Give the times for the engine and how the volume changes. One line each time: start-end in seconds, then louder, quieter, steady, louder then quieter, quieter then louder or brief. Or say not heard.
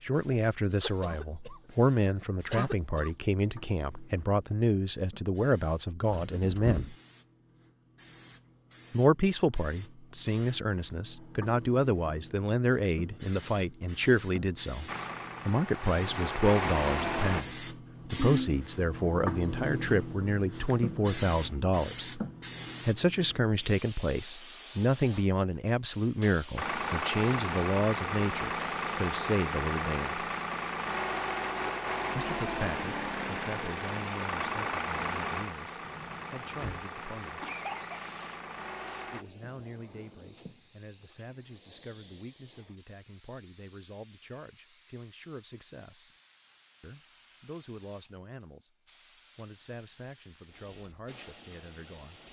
14.8-17.4 brief
26.6-39.2 quieter.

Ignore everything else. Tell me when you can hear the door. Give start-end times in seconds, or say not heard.
6.1-7.0, 35.9-36.9.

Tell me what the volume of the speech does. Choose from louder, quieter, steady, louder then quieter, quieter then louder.
quieter.